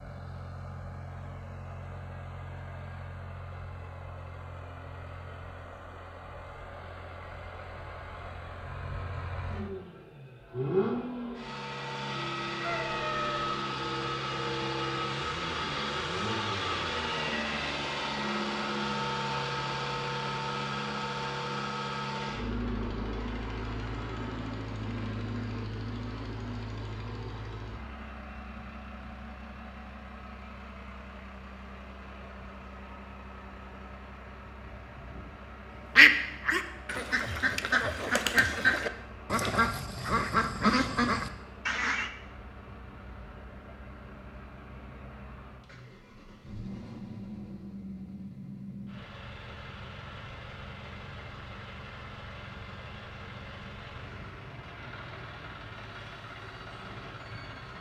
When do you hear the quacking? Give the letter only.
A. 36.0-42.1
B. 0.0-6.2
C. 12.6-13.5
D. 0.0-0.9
A.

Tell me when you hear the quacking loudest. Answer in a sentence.
The volume of the quacking peaks at 36 seconds.